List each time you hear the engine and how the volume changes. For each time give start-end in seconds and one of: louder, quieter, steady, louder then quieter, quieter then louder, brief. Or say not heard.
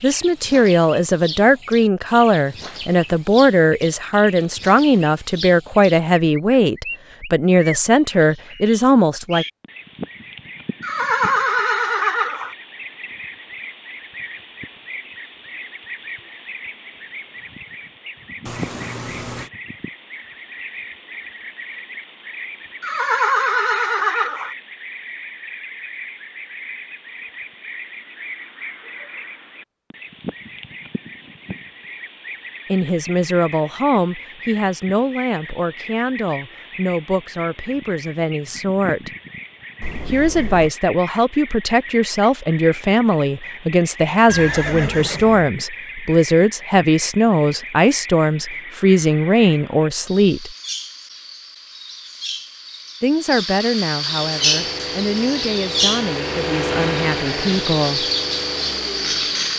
54.0-59.5 louder then quieter.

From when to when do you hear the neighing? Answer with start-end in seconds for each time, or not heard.
10.8-12.6, 22.8-24.6, 44.2-45.5.